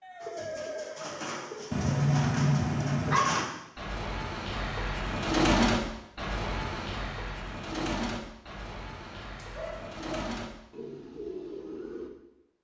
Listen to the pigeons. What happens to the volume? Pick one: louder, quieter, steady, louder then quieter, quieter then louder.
louder then quieter.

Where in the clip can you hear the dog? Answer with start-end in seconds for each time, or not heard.
1.7-3.5, 9.2-10.1.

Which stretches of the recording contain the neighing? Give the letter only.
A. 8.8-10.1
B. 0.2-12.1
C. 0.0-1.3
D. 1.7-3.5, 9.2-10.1
C.